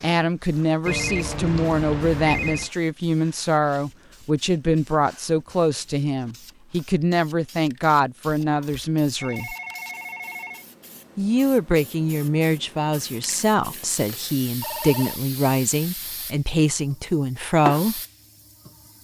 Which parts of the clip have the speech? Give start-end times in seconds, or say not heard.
0.0-9.6, 11.2-18.0.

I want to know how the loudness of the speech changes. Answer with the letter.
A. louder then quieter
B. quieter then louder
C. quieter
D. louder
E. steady
E.